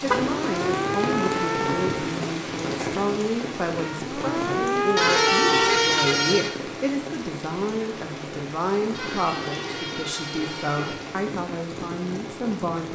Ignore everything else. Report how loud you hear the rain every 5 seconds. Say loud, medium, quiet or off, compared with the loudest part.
loud, medium, medium.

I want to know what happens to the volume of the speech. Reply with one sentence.
The loudness of the speech stays about the same.